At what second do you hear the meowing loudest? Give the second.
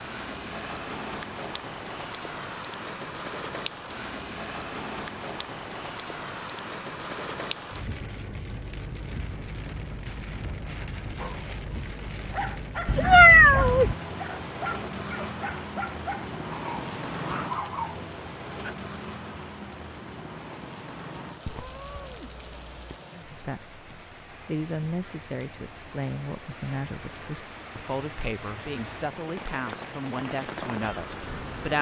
13 s.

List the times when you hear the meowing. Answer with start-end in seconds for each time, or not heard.
12.8-13.9, 21.4-23.0.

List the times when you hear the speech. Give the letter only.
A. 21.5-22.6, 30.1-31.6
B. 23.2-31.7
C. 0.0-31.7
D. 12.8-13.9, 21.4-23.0
B.